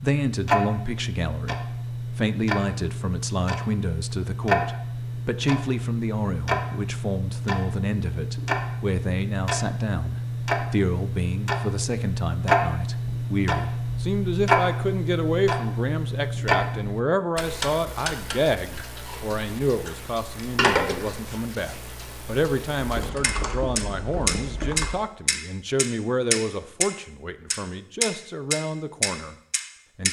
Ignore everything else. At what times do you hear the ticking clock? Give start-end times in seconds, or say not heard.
0.0-26.9, 27.5-30.0.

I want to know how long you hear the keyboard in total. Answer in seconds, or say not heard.
2 s.